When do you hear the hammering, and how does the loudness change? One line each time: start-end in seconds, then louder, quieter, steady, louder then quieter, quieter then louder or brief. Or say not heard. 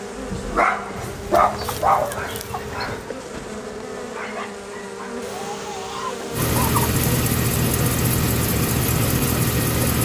not heard.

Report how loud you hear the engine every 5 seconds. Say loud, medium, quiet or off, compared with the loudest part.
off, loud.